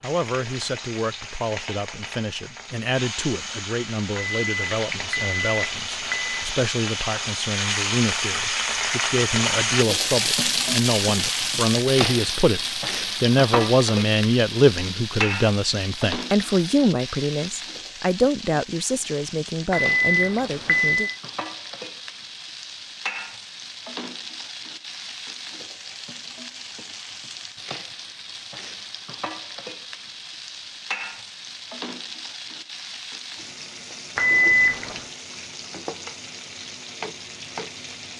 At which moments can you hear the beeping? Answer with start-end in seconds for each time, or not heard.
4.2-6.5, 19.7-21.1, 34.1-35.0.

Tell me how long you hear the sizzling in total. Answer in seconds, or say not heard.
38 s.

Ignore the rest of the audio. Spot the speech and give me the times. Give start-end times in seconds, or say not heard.
0.0-21.1.